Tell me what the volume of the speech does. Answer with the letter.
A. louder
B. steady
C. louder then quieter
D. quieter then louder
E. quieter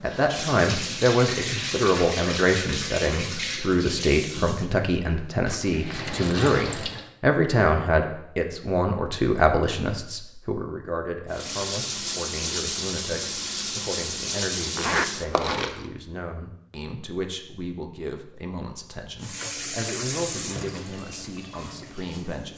E.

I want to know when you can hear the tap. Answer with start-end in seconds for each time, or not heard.
0.0-7.2, 11.2-15.8, 19.2-22.5.